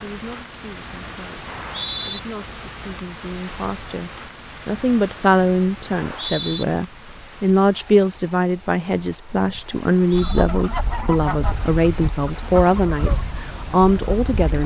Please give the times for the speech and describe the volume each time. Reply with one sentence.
You can hear the speech from 0.0 to 14.6 s, getting louder.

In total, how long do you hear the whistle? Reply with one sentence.
You can hear the whistle for 2 seconds altogether.